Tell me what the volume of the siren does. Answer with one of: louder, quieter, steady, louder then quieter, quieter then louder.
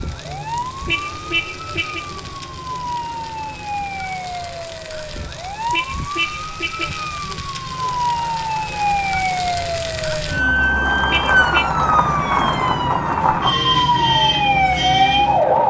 louder.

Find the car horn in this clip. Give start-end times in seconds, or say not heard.
0.8-2.0, 5.7-7.0, 11.1-11.7.